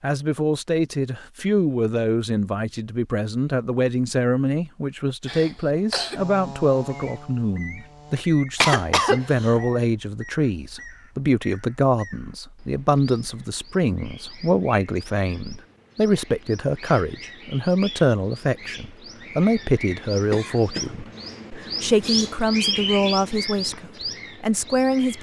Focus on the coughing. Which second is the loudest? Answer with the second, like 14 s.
9 s.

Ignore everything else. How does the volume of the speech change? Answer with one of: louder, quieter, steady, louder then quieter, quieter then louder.
steady.